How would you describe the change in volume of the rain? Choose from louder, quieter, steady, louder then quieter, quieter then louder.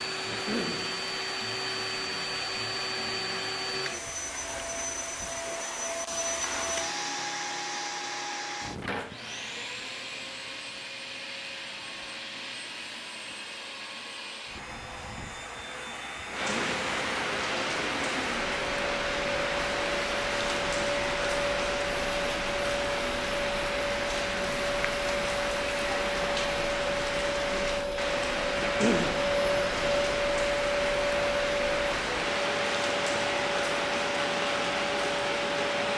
steady.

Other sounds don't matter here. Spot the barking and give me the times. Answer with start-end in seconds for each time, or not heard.
not heard.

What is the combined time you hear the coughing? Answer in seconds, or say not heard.
2 s.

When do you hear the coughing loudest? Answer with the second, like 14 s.
29 s.